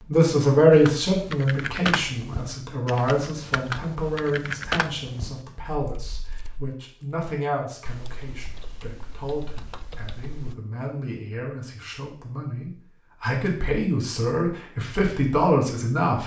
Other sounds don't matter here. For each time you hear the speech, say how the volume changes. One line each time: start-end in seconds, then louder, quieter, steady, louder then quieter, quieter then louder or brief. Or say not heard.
0.1-16.2 quieter then louder.